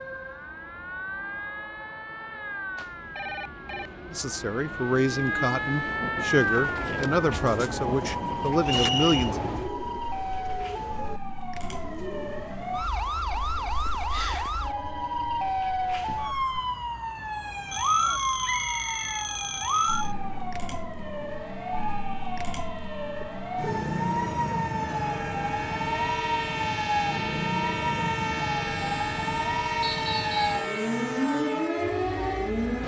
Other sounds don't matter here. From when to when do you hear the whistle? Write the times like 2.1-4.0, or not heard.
8.7-9.3, 18.4-19.9, 29.8-30.6.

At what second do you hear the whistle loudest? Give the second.
9 s.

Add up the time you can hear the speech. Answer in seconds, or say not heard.
5 s.